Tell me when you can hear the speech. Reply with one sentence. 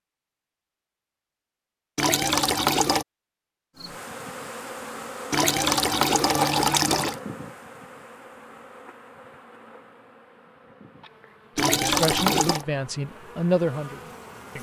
You can hear the speech from 11.6 to 14.5 s.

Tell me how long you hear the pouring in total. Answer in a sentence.
You can hear the pouring for 4 seconds altogether.